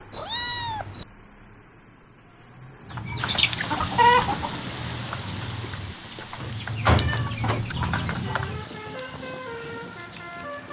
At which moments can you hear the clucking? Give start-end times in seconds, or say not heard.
2.9-8.7.